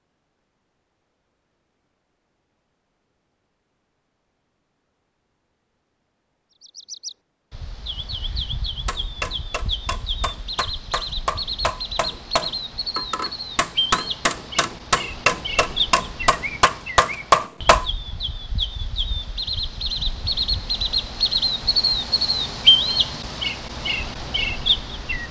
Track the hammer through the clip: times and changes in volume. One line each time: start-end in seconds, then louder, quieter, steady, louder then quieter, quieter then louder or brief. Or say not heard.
8.8-17.9 louder.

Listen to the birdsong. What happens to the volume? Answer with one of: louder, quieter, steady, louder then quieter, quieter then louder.
louder.